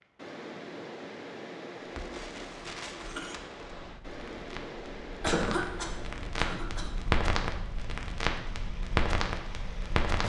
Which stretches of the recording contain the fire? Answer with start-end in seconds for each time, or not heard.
1.9-10.2.